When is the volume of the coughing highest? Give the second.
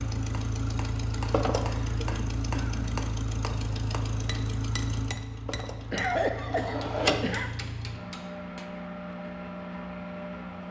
6 s.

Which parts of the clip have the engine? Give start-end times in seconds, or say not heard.
0.0-10.6.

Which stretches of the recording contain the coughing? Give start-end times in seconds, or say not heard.
1.2-3.0, 5.9-7.5.